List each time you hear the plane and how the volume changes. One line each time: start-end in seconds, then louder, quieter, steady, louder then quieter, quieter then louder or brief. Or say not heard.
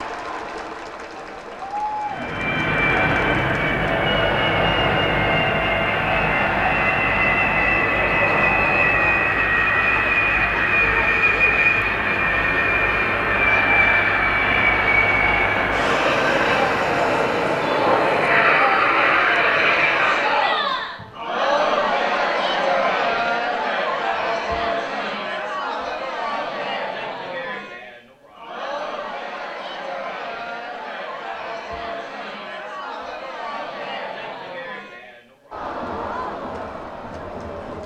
2.0-20.5 steady.